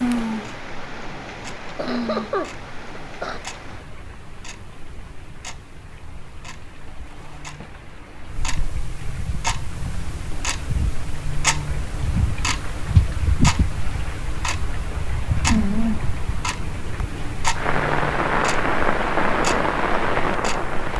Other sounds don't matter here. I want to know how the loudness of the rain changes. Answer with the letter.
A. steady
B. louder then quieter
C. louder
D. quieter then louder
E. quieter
D.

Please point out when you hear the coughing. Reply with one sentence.
You can hear the coughing from 1.8 to 3.4 s.